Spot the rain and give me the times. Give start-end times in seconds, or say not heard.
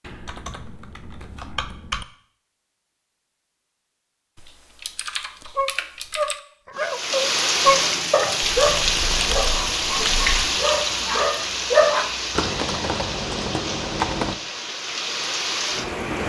6.8-16.2.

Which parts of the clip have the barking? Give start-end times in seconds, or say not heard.
5.5-12.1.